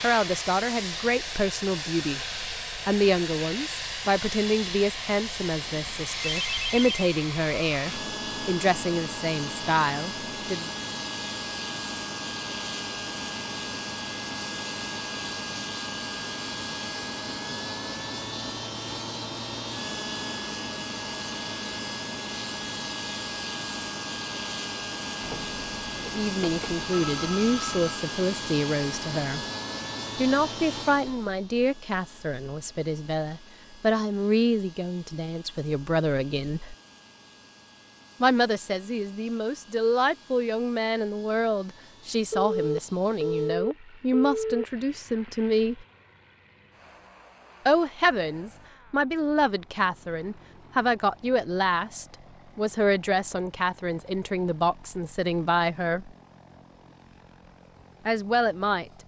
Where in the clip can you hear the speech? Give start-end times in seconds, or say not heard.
0.0-10.7, 26.0-29.4, 30.1-36.8, 38.2-45.9, 47.6-56.1, 58.0-58.9.